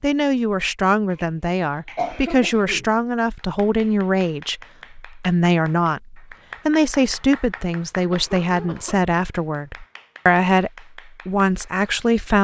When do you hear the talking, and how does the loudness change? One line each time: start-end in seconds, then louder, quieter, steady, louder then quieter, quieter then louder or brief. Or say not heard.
0.0-12.3 steady.